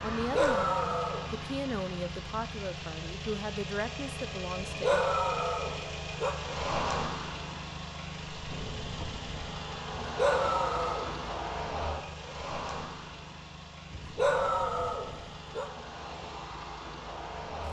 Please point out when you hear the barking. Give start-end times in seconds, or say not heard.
0.1-1.4, 4.5-6.3, 9.9-11.2, 13.9-15.7.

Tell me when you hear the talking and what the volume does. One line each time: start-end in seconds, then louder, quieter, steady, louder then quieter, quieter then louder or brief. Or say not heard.
0.0-5.0 steady.